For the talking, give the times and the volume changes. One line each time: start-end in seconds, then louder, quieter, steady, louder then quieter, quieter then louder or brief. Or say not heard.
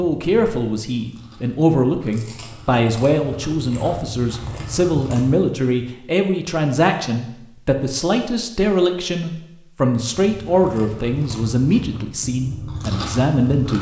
0.0-13.7 steady.